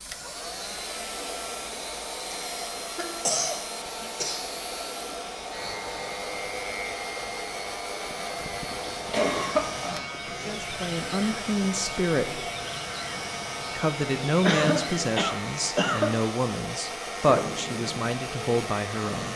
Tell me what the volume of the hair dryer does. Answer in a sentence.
The loudness of the hair dryer stays about the same.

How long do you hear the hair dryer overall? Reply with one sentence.
You can hear the hair dryer for 19 seconds altogether.